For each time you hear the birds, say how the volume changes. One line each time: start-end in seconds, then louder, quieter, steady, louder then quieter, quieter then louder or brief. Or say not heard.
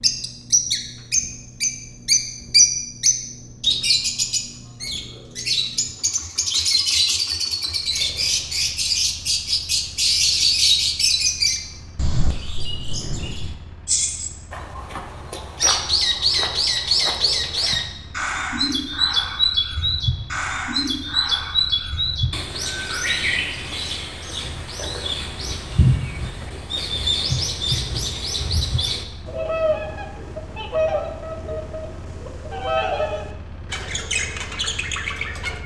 0.0-35.6 quieter.